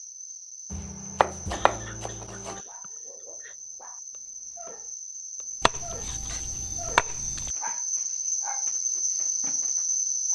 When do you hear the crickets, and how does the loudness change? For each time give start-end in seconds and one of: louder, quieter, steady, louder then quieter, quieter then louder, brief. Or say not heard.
0.0-10.2 louder.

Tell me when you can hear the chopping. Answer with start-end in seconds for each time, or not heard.
0.7-2.6, 5.6-7.5.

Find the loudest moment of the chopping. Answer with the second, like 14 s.
7 s.